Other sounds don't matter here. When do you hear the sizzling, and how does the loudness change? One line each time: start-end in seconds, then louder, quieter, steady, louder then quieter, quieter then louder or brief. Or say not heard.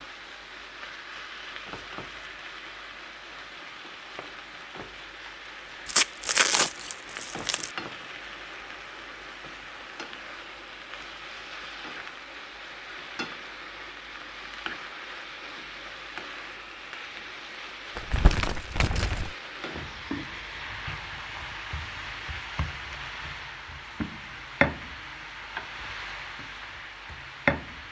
0.0-27.8 louder.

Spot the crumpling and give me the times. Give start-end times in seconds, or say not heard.
5.8-7.7, 17.9-19.4.